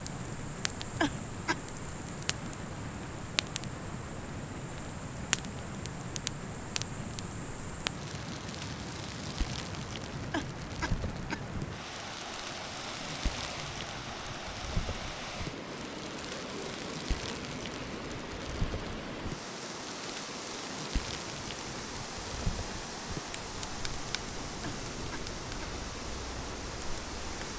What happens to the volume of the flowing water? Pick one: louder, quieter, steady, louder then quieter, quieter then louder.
steady.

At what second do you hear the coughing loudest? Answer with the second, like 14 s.
1 s.